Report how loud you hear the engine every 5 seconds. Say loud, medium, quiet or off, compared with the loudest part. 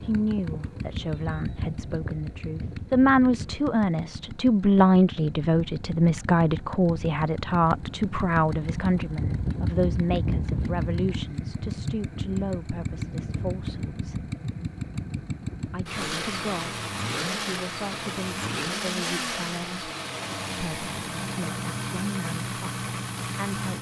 medium, loud, loud, loud, loud.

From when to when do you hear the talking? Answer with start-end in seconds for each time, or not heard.
0.1-14.2, 15.7-19.9, 20.6-23.7.